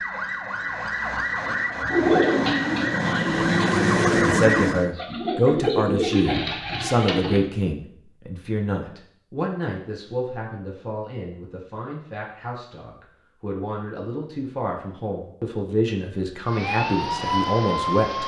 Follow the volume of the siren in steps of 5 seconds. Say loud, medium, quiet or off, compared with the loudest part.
loud, off, off, loud.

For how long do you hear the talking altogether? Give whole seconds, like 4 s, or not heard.
14 s.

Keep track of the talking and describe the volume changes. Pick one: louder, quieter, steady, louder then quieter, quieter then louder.
quieter then louder.